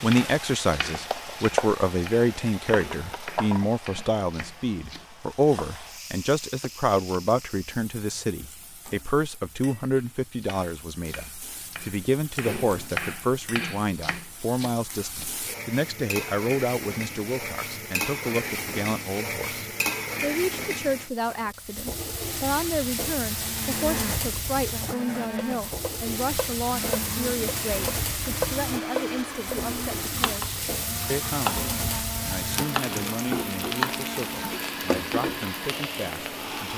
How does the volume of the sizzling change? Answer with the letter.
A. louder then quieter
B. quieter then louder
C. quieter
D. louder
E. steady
B.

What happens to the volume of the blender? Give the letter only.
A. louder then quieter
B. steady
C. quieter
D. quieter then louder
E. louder
B.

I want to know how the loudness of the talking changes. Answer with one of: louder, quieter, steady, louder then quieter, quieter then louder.
quieter.